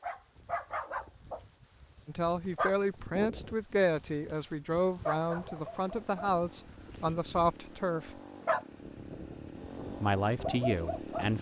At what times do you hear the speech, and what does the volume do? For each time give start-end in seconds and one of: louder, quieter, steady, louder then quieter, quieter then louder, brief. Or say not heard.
2.0-8.2 steady
10.0-11.3 brief.